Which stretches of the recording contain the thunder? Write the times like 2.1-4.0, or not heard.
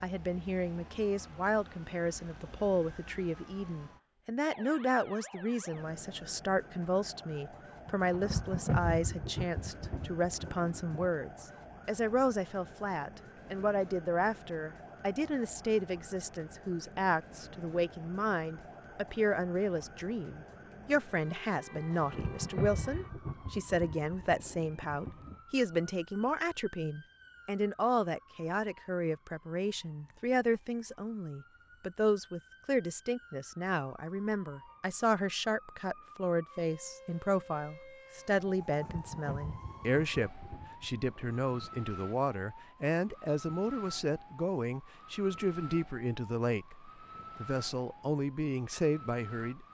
7.8-11.1, 21.9-25.4, 38.5-41.9.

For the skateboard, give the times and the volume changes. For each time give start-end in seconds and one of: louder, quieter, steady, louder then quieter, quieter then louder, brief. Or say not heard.
not heard.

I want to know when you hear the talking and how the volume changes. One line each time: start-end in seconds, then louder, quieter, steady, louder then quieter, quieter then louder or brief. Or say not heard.
0.0-49.6 steady.